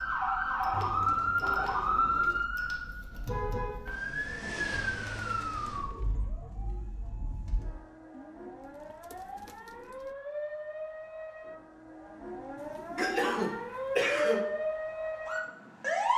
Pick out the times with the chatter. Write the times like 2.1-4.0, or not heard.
not heard.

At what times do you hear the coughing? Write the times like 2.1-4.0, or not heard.
12.9-14.4.